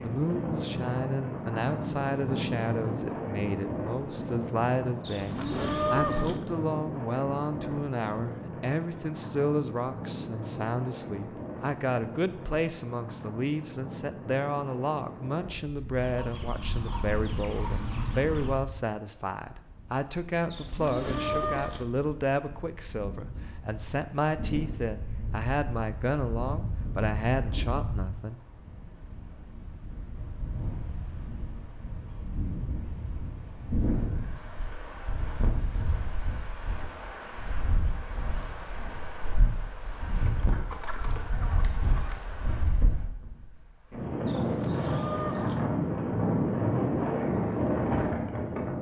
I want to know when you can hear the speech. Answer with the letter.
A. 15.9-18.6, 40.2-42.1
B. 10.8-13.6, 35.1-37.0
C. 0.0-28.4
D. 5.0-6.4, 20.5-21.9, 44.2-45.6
C.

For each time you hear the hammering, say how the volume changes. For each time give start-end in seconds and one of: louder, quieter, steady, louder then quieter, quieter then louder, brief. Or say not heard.
not heard.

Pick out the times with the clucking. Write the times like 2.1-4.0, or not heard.
15.9-18.6, 40.2-42.1.